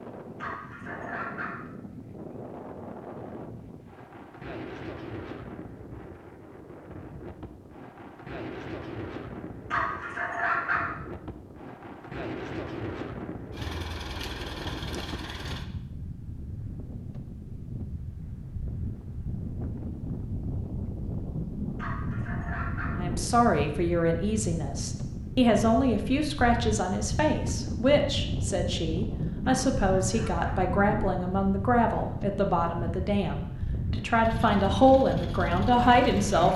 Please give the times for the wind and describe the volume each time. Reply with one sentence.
You can hear the wind from 0.0 to 36.5 s, getting louder.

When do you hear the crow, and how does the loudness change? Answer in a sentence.
The crow can't be heard in this clip.